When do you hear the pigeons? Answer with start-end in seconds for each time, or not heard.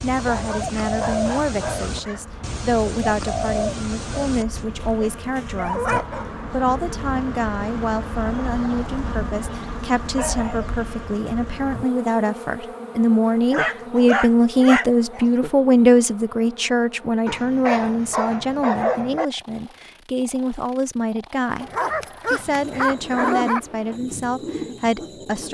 0.0-4.7, 22.4-25.4.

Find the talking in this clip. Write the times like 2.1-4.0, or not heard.
0.0-21.7, 22.3-25.4.